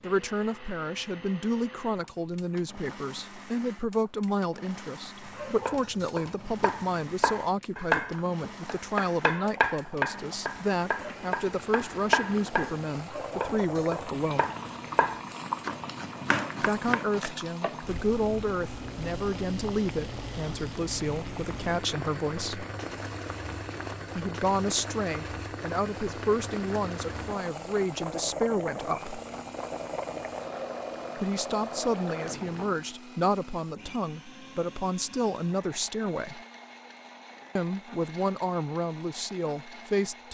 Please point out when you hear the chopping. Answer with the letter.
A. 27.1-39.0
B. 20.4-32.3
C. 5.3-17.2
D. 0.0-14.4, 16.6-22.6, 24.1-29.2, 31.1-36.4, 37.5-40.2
C.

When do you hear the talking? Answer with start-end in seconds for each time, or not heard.
0.0-14.4, 16.6-22.6, 24.1-29.2, 31.1-36.4, 37.5-40.2.